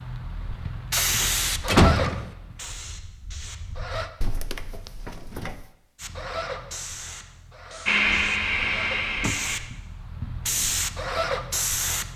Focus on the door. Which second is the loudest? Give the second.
2 s.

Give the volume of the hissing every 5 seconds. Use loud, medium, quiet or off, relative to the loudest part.
loud, medium, loud.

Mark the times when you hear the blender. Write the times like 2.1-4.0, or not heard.
7.8-9.6.